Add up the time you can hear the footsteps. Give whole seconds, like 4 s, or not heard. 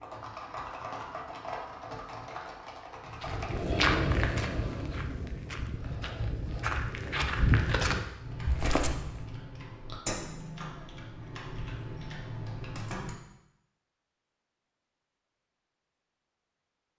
6 s.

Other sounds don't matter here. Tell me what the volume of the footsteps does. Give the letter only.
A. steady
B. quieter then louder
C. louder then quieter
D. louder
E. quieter
B.